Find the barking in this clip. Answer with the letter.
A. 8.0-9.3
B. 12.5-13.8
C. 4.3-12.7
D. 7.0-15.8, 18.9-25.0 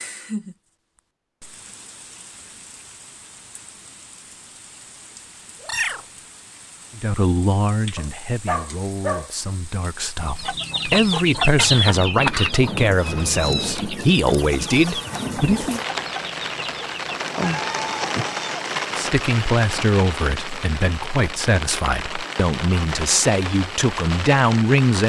A.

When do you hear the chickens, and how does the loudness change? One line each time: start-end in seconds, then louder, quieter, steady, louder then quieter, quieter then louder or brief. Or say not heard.
10.2-18.6 quieter.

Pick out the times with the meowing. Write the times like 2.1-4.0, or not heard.
5.6-6.0, 13.1-13.8, 17.4-18.2.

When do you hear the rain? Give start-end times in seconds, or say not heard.
0.0-25.0.